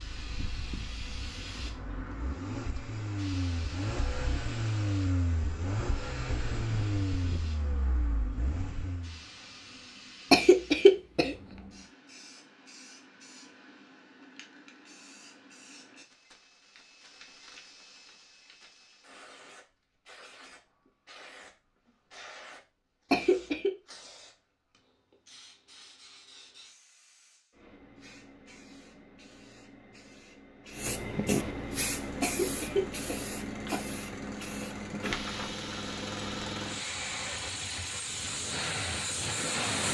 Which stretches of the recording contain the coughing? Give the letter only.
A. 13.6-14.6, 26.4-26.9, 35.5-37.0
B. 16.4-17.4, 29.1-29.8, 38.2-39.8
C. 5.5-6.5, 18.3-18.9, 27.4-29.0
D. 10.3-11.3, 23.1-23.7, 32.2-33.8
D.